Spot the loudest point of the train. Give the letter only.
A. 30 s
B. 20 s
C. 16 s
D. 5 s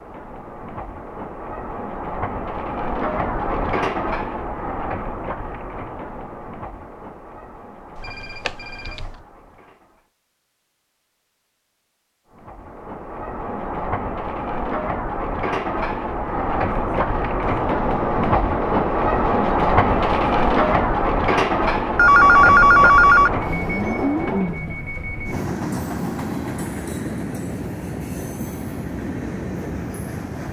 B.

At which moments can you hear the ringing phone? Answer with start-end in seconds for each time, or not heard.
8.0-9.2, 21.9-23.3.